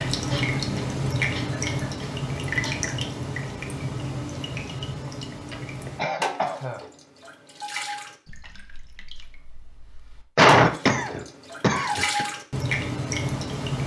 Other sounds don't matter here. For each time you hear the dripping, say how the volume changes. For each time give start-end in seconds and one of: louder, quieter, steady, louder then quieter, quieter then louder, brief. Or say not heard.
0.0-13.8 quieter then louder.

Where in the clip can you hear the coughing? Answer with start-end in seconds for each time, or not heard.
0.2-2.9, 5.0-6.8, 10.3-12.2.